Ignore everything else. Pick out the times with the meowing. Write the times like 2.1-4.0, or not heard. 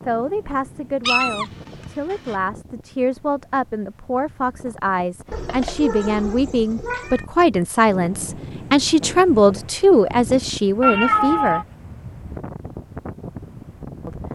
1.1-2.4, 5.3-7.2, 10.8-11.7.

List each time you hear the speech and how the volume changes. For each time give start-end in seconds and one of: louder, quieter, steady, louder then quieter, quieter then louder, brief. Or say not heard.
0.1-11.7 louder.